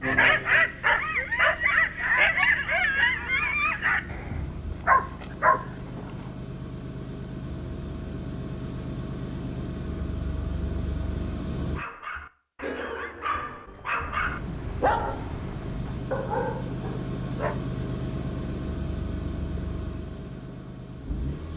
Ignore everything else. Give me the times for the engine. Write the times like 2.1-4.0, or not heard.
0.0-11.8, 14.2-21.5.